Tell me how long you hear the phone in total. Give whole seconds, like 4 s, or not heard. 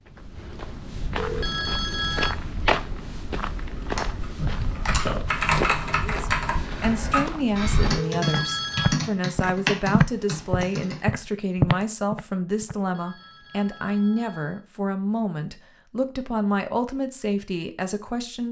4 s.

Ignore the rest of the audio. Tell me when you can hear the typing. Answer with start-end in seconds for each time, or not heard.
3.6-11.0.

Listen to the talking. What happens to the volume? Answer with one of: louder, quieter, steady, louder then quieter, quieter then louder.
steady.